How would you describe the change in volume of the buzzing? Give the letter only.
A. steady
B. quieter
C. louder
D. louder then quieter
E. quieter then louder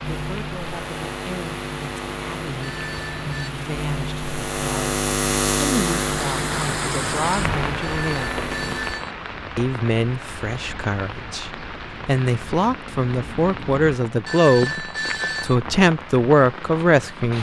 D.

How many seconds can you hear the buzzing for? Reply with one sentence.
The buzzing can be heard for 9 seconds in total.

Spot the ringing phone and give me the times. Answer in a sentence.
You can hear the ringing phone from 2.6 to 3.5 s, from 7.8 to 9.2 s and from 14.2 to 15.6 s.